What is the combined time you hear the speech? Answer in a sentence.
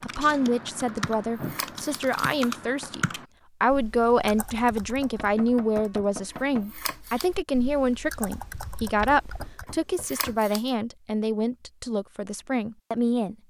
The speech can be heard for 13 seconds in total.